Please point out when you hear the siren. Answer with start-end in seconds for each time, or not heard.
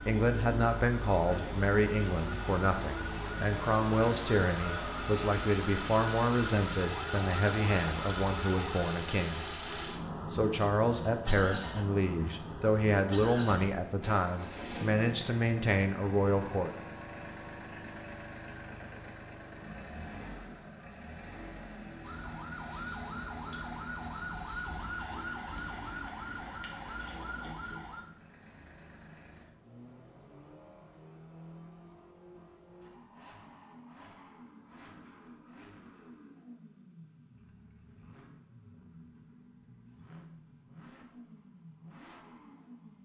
0.0-8.8, 22.0-28.1.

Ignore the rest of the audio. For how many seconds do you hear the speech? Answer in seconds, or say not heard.
16 s.